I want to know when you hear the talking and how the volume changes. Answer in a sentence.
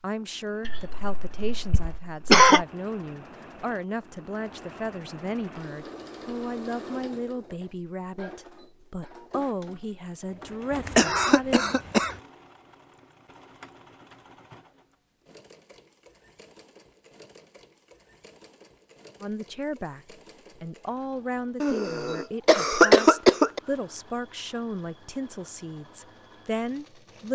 You can hear the talking from 0.0 to 11.7 s, at a steady volume; and from 19.2 to 27.3 s, at a steady volume.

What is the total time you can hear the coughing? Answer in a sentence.
You can hear the coughing for 5 seconds altogether.